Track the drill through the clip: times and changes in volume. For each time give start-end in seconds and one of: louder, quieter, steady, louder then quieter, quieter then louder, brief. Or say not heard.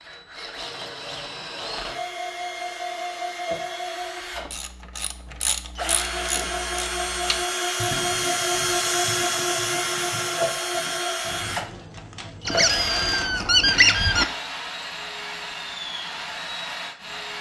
0.0-17.3 louder then quieter.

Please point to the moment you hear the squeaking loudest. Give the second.
14 s.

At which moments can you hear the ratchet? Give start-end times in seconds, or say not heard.
4.3-13.4.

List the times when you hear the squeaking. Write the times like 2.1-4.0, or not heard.
12.4-14.2.